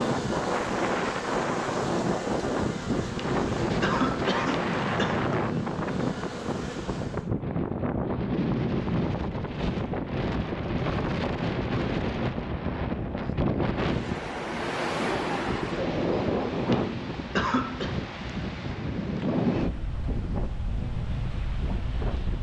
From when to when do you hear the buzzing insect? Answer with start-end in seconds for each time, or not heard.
0.0-7.3.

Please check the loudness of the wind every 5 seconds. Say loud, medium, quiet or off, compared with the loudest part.
loud, loud, loud, loud, medium.